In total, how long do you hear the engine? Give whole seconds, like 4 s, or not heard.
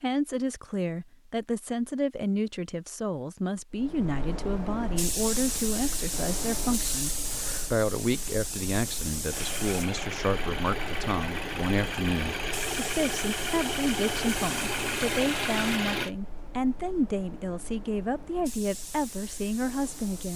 7 s.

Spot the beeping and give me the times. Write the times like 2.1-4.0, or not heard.
not heard.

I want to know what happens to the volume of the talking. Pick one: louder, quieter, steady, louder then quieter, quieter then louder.
steady.